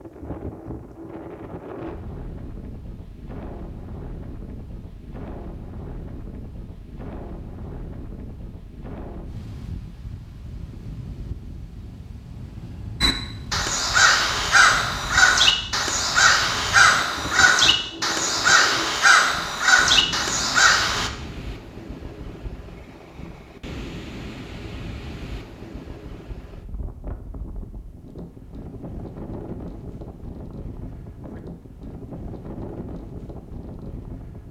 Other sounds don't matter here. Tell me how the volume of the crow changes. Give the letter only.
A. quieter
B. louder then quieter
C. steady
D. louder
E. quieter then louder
C.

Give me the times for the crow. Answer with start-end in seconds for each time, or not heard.
13.0-21.1.